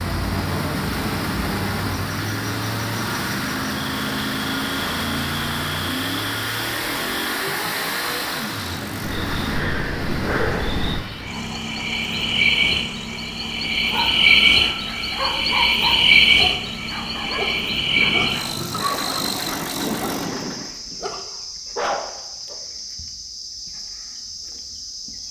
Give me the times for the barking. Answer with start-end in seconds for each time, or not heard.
13.8-22.6.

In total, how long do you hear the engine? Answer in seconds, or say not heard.
21 s.